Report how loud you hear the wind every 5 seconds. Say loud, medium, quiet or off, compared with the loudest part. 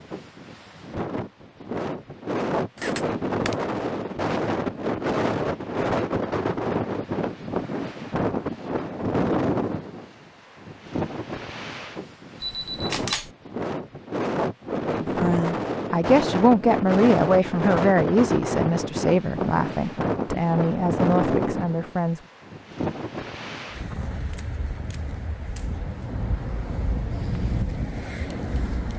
loud, loud, medium, loud, loud, medium.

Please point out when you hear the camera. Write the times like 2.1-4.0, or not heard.
2.8-3.5, 12.4-13.3, 24.2-25.7.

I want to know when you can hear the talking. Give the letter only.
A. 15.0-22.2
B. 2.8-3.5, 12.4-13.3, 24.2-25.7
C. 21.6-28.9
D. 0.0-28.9
A.